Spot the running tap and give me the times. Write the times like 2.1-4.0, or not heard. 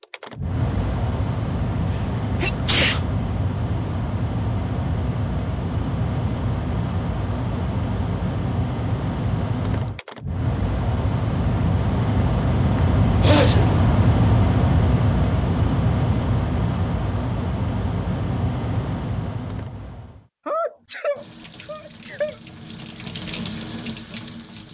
21.1-24.7.